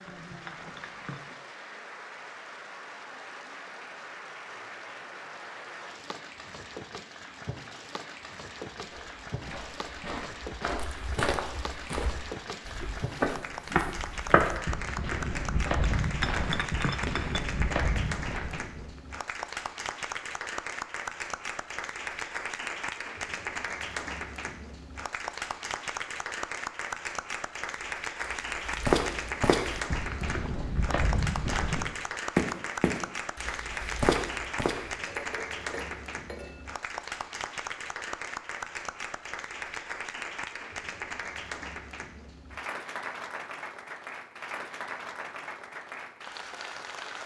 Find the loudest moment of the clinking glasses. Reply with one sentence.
The loudest moment of the clinking glasses is at 16 seconds.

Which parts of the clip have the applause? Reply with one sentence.
The applause can be heard from 0.0 to 47.2 s.